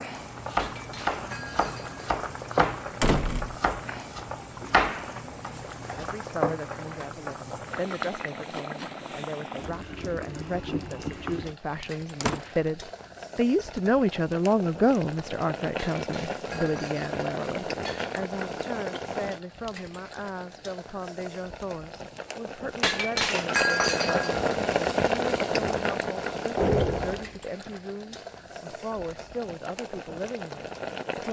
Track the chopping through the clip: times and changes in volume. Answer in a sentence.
The chopping can be heard from 0.1 to 6.2 s, getting quieter then louder.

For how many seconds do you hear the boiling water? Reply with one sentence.
You can hear the boiling water for 31 seconds altogether.